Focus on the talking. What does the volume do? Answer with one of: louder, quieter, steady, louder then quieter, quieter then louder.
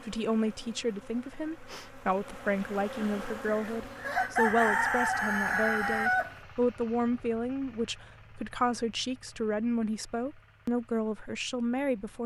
steady.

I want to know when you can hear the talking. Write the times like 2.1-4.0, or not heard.
0.0-12.2.